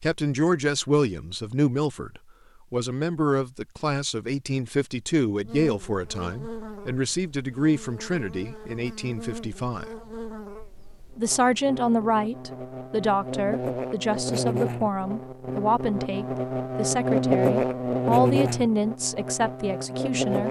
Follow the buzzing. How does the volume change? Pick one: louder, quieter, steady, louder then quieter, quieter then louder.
louder.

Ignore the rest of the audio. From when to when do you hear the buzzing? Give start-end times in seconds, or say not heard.
5.5-20.4.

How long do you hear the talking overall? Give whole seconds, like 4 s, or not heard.
19 s.